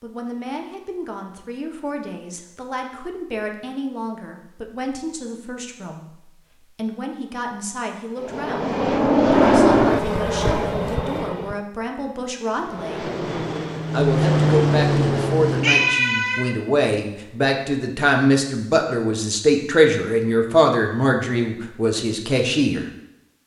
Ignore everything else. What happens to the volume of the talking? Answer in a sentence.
The loudness of the talking goes up.